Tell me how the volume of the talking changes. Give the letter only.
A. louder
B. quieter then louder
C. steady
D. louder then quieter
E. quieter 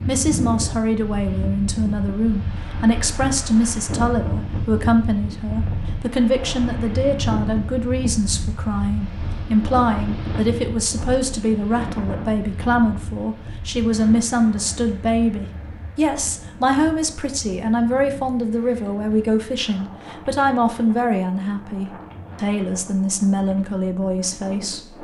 C.